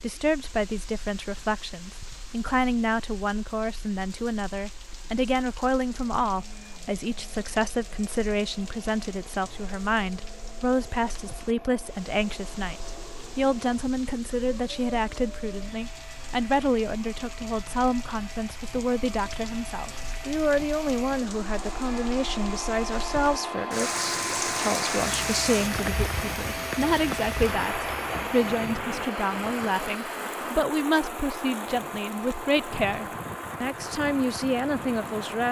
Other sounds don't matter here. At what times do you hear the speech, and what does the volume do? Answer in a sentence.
You can hear the speech from 0.0 to 35.4 s, at a steady volume.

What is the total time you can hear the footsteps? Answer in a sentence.
The footsteps can't be heard in this clip.